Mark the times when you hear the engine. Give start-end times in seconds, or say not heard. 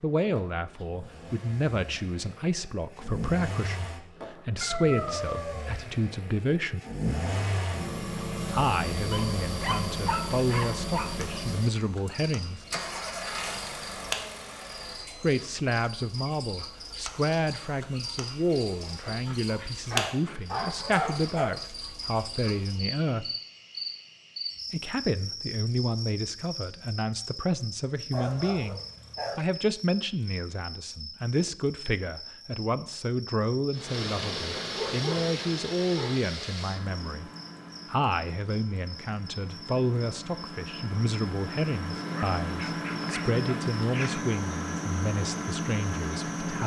0.1-15.3, 33.7-46.6.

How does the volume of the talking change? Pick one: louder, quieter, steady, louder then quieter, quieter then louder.
steady.